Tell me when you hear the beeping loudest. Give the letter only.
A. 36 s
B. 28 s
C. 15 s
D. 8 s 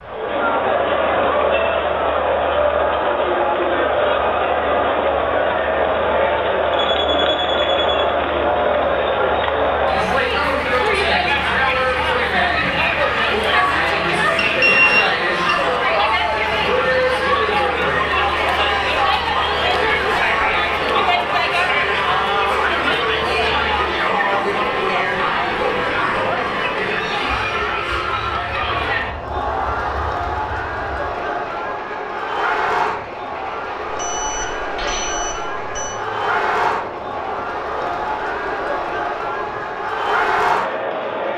C.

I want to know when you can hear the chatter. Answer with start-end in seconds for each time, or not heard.
0.0-41.3.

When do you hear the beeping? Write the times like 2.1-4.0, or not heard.
6.7-8.2, 14.3-15.6, 33.9-36.0.